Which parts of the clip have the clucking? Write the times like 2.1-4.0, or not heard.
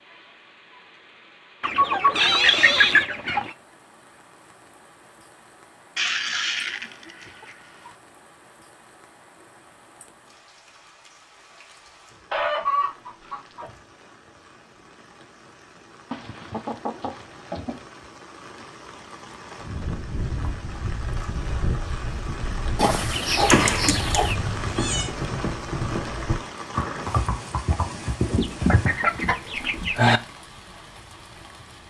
1.6-3.5, 6.0-7.9, 12.3-13.7, 16.1-17.8, 22.8-24.4, 28.3-30.2.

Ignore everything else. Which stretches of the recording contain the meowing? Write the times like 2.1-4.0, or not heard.
2.1-3.0, 23.4-25.1.